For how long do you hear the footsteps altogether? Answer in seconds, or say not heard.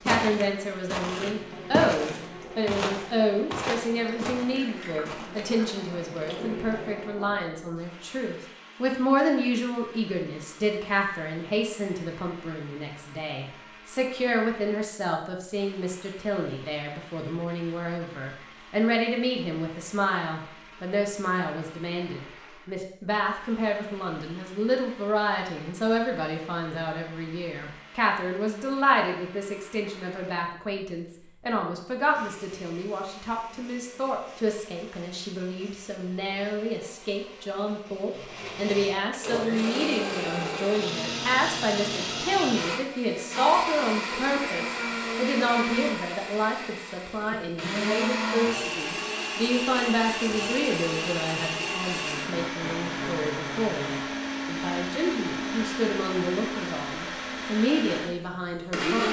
5 s.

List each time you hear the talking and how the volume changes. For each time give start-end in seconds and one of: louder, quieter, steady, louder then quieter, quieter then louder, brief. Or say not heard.
0.1-59.0 steady.